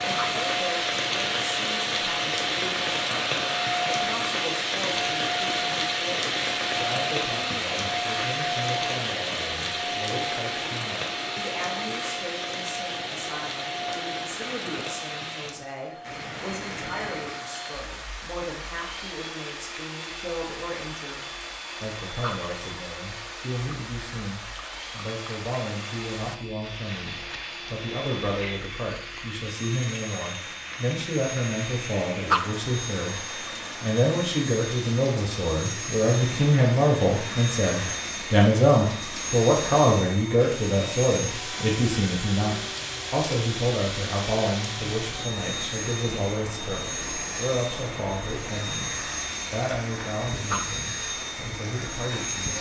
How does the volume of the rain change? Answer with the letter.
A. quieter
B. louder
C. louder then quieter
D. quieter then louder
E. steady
A.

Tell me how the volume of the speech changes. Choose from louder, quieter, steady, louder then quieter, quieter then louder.
louder then quieter.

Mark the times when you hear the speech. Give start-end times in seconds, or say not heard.
0.0-52.5.